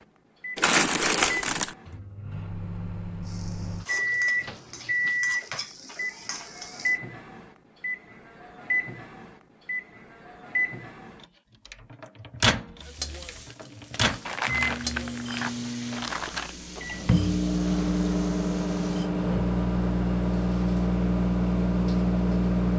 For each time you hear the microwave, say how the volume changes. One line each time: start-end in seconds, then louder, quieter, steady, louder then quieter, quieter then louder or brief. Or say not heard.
0.0-22.7 louder.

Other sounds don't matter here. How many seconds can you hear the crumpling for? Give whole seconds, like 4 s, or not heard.
4 s.